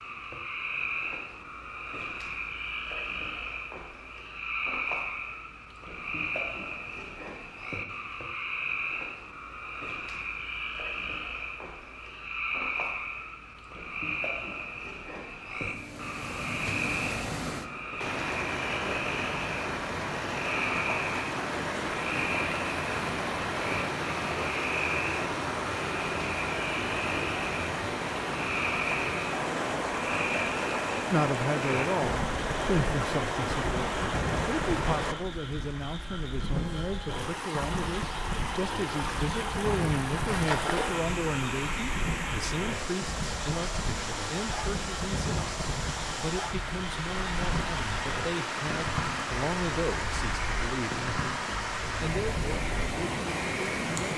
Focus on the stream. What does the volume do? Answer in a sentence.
The loudness of the stream stays about the same.